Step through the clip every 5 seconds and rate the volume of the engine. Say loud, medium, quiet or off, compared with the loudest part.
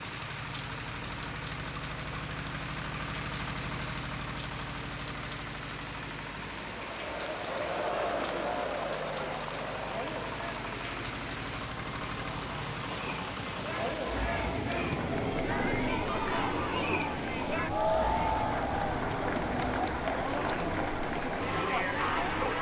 loud, medium, loud, loud, loud.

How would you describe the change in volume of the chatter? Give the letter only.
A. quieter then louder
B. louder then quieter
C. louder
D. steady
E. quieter
A.